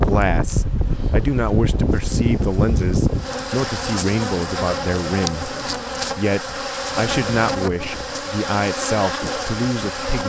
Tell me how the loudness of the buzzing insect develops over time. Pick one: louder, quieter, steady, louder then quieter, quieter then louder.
louder.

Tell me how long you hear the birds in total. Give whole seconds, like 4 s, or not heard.
not heard.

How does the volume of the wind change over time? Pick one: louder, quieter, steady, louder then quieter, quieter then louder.
quieter.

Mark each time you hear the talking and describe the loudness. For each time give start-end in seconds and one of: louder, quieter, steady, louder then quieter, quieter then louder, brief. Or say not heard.
0.0-10.2 steady.